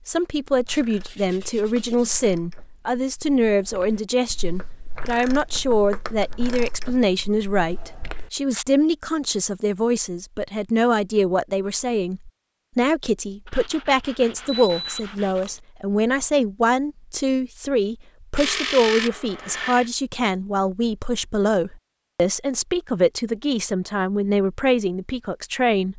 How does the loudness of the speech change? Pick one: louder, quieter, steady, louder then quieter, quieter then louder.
steady.